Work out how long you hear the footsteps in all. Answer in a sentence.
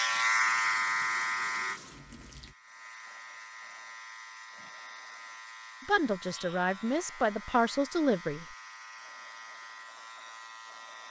You can't hear the footsteps here.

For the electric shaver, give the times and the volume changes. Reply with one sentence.
You can hear the electric shaver from 0.0 to 11.0 s, getting quieter.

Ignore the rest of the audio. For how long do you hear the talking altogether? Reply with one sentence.
You can hear the talking for 3 seconds altogether.